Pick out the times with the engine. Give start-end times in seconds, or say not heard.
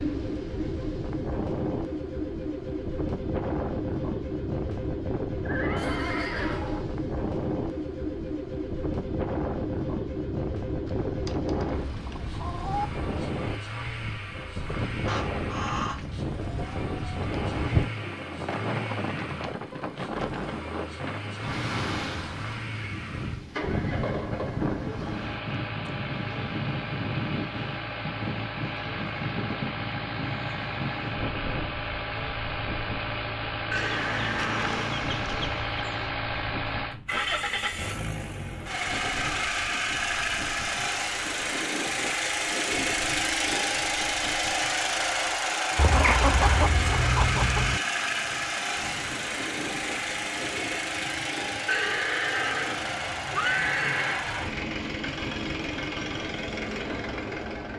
0.0-57.7.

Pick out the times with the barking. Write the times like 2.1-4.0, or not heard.
not heard.